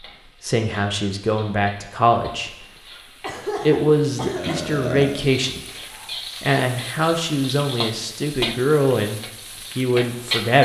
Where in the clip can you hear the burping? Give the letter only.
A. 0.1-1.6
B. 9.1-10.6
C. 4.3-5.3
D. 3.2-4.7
C.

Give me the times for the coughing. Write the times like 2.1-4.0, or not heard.
3.2-4.7.